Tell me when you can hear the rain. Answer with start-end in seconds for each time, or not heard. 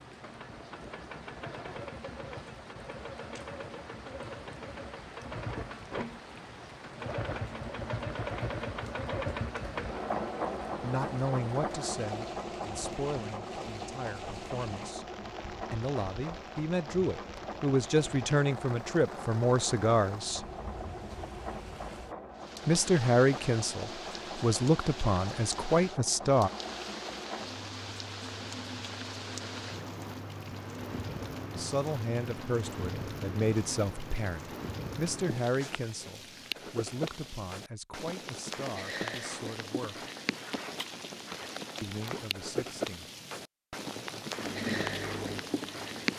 0.0-46.1.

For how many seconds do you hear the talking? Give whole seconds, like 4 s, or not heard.
23 s.